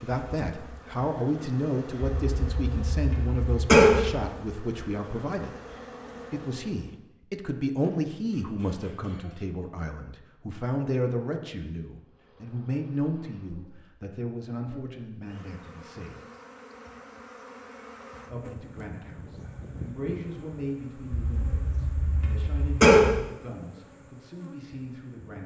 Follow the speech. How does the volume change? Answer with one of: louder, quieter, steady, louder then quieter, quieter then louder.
quieter.